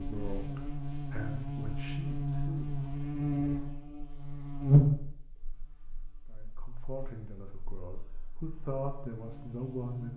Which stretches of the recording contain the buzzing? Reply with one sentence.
The buzzing can be heard from 0.0 to 10.1 s.